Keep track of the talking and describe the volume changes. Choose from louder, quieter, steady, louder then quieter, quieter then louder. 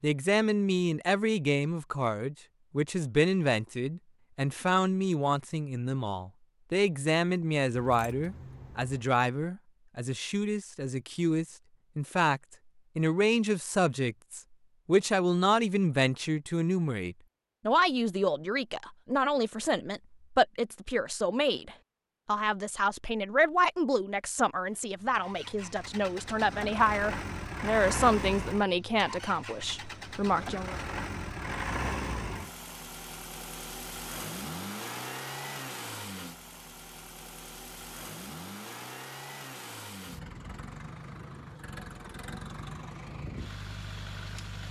steady.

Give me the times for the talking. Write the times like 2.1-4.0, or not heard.
0.0-30.8.